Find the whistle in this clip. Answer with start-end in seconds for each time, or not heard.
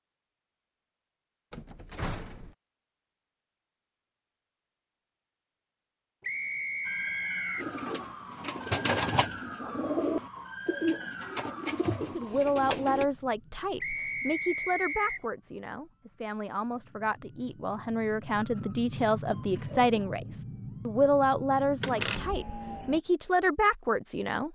6.2-7.7, 13.8-15.2.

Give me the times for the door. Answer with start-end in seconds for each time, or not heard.
1.5-2.5, 21.8-22.4.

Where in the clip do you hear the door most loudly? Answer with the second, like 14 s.
22 s.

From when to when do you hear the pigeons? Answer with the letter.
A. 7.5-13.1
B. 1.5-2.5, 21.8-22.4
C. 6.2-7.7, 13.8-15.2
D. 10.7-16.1
A.